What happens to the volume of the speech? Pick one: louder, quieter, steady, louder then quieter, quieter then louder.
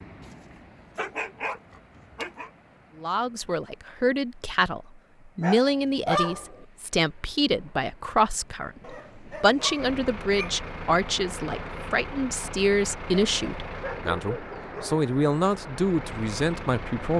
steady.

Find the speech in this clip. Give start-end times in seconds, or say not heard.
3.0-17.1.